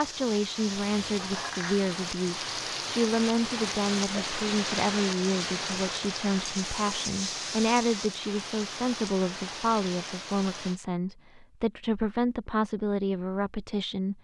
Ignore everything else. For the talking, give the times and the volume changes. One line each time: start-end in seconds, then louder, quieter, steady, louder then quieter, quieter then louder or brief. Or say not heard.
0.0-14.1 steady.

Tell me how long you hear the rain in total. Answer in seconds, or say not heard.
11 s.